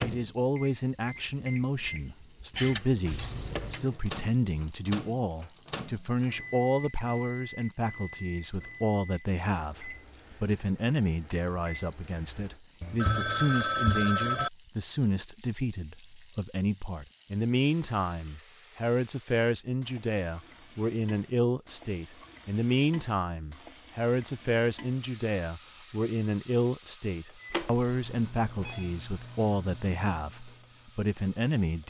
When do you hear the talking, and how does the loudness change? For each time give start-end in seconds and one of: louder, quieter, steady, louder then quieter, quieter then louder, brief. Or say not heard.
0.0-31.8 steady.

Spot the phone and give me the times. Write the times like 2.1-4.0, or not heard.
2.5-3.8, 12.8-14.5, 27.5-28.9.